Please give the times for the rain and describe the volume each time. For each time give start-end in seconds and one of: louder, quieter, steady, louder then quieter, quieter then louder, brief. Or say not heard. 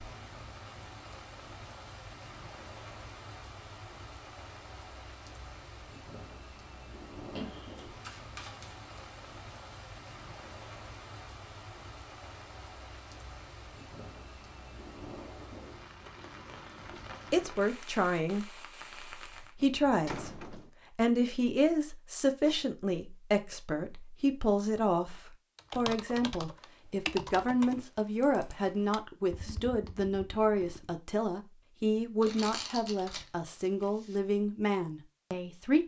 0.0-19.6 steady.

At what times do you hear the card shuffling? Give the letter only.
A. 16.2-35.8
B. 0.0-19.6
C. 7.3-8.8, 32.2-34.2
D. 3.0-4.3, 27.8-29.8
C.